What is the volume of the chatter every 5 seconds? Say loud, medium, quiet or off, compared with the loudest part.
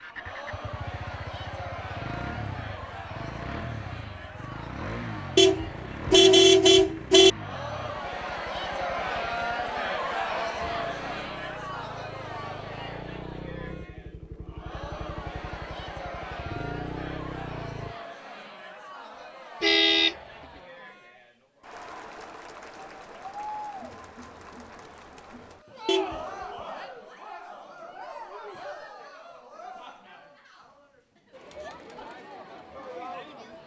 medium, loud, loud, medium, medium, medium, medium.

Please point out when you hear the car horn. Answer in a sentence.
The car horn can be heard from 5.3 to 7.3 s, from 19.6 to 20.1 s and from 25.9 to 26.4 s.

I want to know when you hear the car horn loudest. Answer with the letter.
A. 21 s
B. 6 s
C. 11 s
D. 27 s
B.